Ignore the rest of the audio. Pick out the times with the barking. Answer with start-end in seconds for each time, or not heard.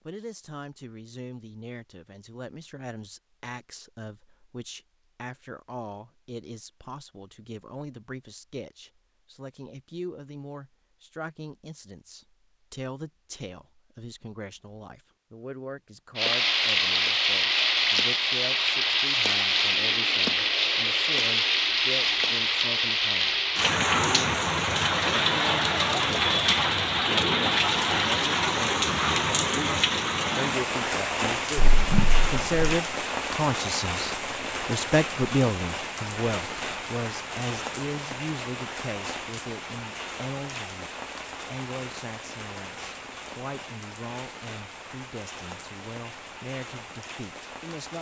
not heard.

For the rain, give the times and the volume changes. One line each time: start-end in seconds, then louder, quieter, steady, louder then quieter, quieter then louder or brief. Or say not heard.
16.1-47.9 quieter.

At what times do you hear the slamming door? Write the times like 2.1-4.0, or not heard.
31.6-32.8.